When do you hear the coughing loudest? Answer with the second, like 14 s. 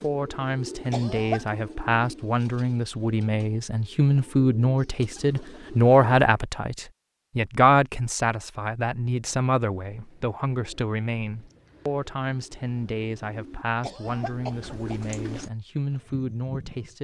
1 s.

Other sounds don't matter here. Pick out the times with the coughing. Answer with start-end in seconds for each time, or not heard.
0.9-1.5, 13.8-15.5.